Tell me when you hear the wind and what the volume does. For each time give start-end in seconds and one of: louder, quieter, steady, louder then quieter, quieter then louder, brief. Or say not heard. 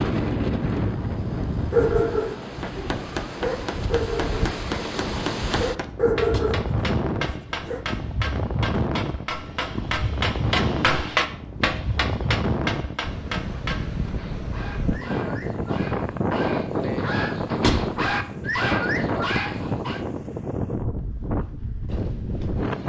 0.0-22.8 steady.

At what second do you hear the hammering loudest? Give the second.
11 s.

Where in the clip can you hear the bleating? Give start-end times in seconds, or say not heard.
not heard.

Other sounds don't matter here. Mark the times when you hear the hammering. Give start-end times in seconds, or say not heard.
2.6-14.1.